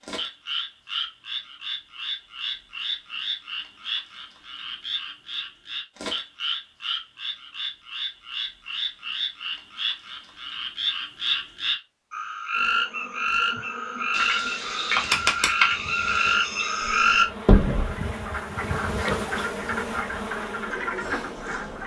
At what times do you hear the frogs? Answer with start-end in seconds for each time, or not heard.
0.0-21.8.